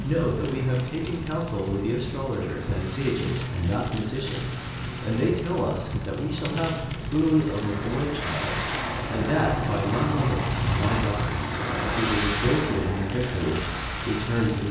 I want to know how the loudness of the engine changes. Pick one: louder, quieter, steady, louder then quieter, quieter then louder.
louder.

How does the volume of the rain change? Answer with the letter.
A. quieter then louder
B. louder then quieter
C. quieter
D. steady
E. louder
D.